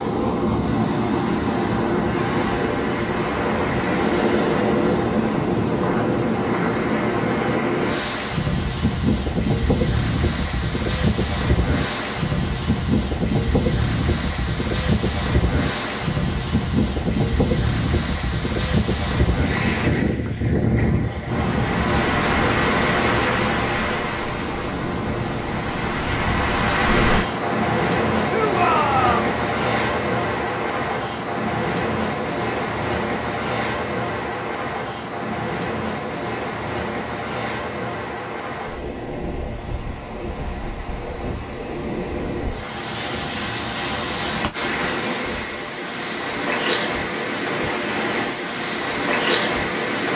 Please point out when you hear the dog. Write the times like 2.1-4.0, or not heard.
not heard.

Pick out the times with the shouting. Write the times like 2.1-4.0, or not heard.
28.2-29.4.